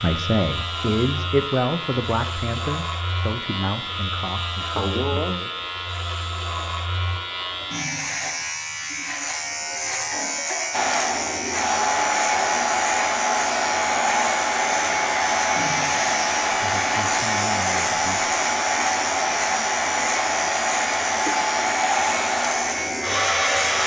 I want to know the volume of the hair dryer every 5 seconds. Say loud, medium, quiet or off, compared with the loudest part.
off, off, loud, loud, loud.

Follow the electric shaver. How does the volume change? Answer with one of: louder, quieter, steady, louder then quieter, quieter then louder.
steady.